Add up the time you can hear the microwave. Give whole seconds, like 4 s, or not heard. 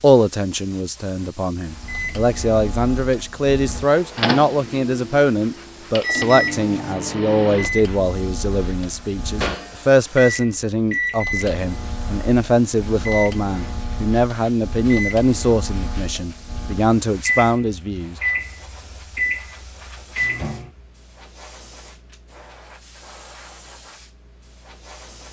19 s.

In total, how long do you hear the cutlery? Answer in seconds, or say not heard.
not heard.